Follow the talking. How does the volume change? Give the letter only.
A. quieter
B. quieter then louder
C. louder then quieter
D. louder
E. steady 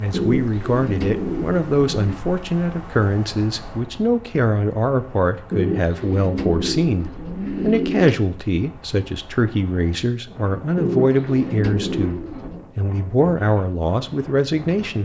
E.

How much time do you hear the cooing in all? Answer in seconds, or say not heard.
7 s.